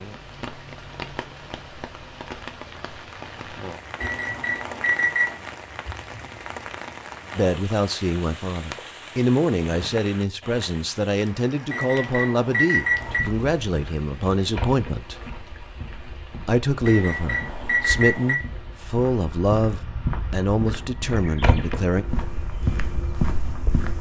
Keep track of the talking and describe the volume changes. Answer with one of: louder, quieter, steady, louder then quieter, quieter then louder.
steady.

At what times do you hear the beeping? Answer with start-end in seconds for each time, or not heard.
4.0-5.3, 11.7-13.2, 16.9-18.4.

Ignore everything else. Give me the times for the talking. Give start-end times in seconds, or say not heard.
7.3-15.2, 16.4-22.1.